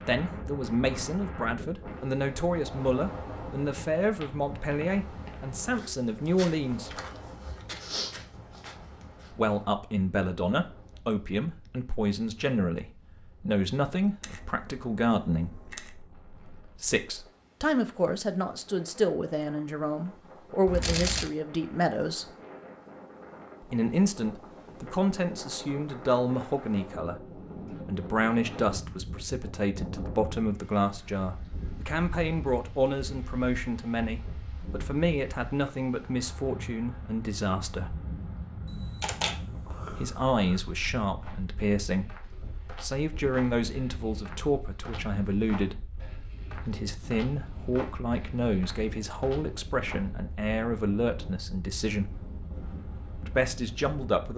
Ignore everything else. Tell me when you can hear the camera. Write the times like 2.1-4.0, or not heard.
14.2-15.9, 20.6-21.3, 38.6-40.6.